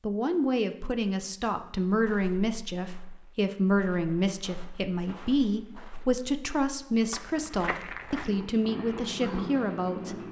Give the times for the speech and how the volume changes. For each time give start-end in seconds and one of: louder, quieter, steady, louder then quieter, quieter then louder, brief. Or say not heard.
0.0-10.2 steady.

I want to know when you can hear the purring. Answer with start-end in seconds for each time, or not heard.
8.2-10.2.